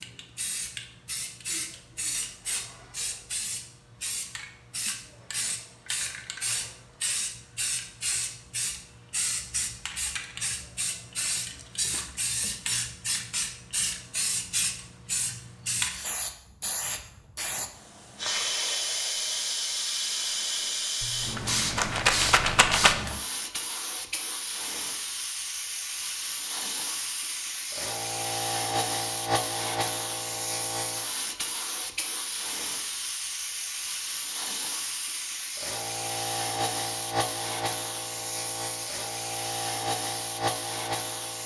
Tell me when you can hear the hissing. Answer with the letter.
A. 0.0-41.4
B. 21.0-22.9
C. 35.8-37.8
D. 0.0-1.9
A.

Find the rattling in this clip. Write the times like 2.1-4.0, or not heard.
21.0-22.9.